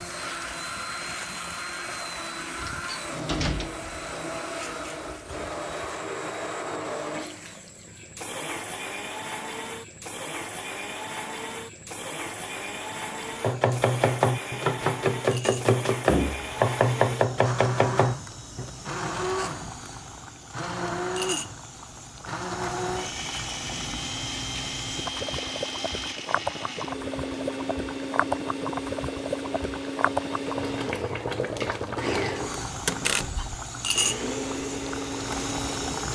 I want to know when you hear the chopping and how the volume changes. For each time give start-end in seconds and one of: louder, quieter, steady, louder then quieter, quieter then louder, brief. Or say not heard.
13.4-18.7 steady.